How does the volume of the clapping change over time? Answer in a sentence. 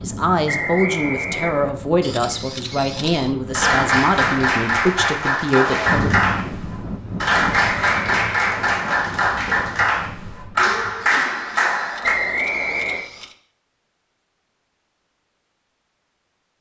The volume of the clapping stays about the same.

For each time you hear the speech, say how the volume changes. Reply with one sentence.
The speech can be heard from 0.0 to 6.1 s, at a steady volume.